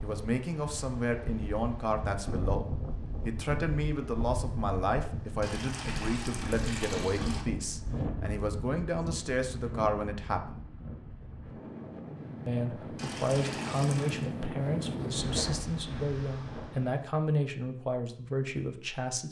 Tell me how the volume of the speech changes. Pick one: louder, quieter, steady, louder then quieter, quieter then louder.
steady.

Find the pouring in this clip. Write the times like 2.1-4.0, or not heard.
5.4-7.5, 12.9-14.3.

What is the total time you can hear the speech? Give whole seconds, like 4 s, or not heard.
17 s.